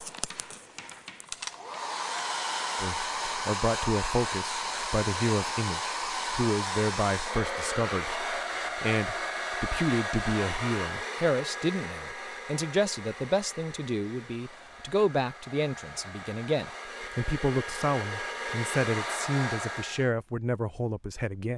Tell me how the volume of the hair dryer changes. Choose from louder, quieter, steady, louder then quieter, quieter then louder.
quieter then louder.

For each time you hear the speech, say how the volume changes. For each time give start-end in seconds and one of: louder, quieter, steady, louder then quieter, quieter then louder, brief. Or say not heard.
2.8-21.5 steady.